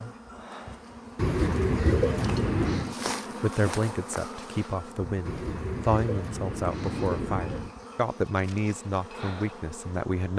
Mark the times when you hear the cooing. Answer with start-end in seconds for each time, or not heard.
1.1-3.0, 5.2-7.8.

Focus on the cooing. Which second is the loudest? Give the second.
2 s.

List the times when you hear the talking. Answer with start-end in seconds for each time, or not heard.
3.4-10.3.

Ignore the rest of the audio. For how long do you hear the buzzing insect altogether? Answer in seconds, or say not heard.
10 s.